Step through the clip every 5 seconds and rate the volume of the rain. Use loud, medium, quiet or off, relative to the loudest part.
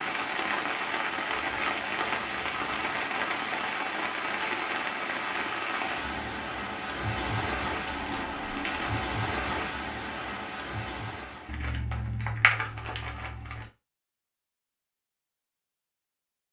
loud, loud, medium, off.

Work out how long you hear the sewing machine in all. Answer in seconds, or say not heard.
not heard.